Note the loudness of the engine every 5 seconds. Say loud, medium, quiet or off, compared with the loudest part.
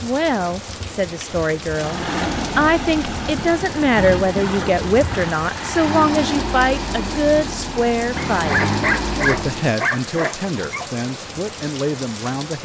loud, loud, off.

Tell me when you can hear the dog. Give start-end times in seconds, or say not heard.
8.3-10.8.